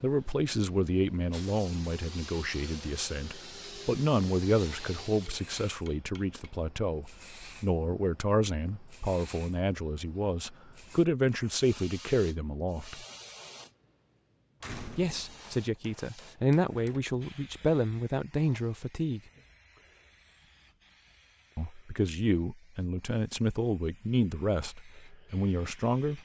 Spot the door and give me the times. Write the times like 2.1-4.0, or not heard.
14.6-15.4.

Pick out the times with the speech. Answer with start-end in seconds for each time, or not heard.
0.0-13.1, 14.9-19.2, 21.6-26.2.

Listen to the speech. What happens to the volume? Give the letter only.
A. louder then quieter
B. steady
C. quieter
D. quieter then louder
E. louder
B.